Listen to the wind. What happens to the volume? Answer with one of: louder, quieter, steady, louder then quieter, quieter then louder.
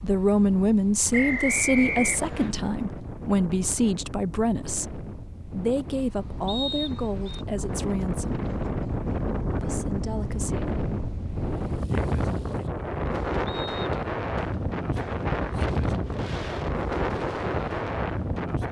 louder.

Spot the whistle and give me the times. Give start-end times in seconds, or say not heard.
1.1-2.5, 6.5-7.5, 13.4-13.9.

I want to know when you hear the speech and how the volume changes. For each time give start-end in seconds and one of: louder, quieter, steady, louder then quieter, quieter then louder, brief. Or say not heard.
0.0-8.4 quieter
9.6-10.7 brief.